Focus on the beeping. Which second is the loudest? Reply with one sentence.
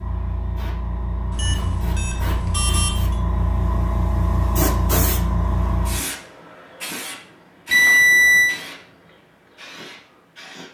The loudest moment of the beeping is at 8 seconds.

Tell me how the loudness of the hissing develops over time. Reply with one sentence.
The volume of the hissing goes up, then down.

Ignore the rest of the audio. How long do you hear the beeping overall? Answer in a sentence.
You can hear the beeping for 3 seconds altogether.